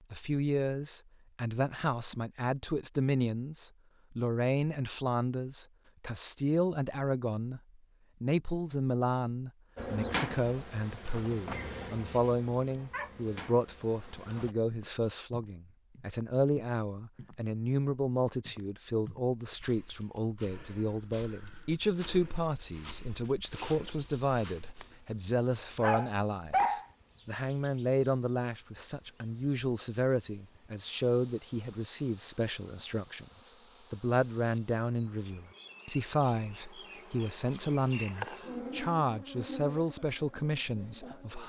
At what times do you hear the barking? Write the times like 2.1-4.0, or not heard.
12.1-13.1, 25.8-26.9.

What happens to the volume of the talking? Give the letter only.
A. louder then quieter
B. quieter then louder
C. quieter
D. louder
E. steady
E.